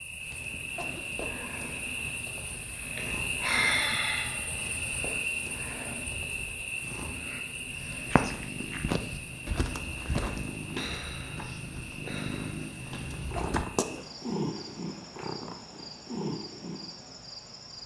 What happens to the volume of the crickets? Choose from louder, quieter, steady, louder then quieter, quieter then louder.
quieter.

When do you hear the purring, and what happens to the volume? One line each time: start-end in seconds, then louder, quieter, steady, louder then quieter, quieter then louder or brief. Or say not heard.
0.0-17.8 louder.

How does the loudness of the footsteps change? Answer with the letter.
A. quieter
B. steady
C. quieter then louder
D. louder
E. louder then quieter
A.